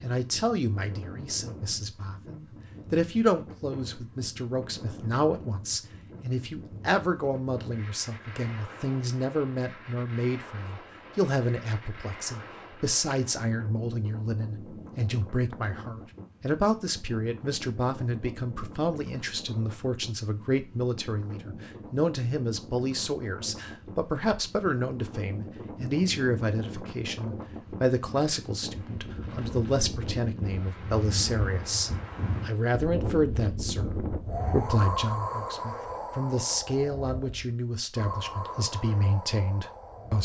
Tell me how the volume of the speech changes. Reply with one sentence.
The volume of the speech stays about the same.